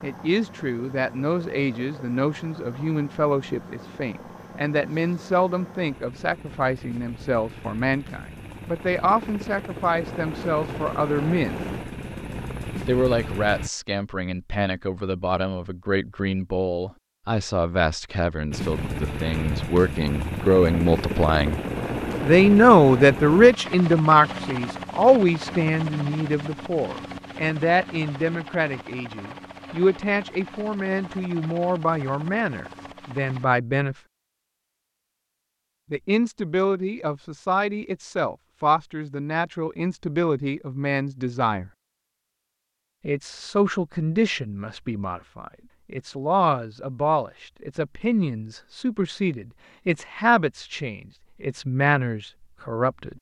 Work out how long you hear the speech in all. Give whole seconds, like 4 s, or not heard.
48 s.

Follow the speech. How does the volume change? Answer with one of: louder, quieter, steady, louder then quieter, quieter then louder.
louder then quieter.